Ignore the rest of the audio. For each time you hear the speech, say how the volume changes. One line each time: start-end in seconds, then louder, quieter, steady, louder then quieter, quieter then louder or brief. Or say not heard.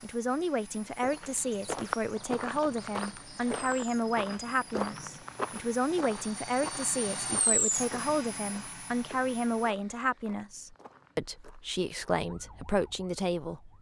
0.0-13.7 steady.